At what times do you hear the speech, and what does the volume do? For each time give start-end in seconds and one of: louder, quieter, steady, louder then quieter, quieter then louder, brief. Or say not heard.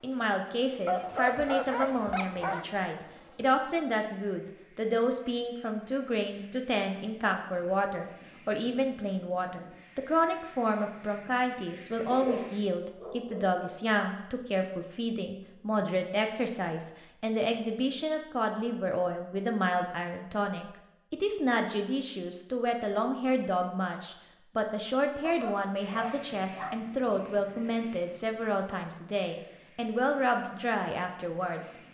0.0-31.8 steady.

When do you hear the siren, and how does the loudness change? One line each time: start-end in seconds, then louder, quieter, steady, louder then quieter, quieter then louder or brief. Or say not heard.
not heard.